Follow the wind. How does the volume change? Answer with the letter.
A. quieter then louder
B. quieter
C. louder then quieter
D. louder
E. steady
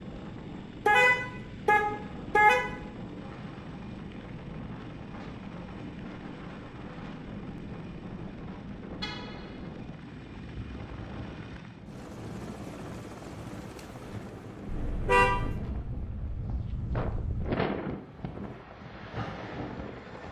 D.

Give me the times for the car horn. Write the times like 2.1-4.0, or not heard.
0.8-2.7, 9.0-9.6, 14.7-15.6.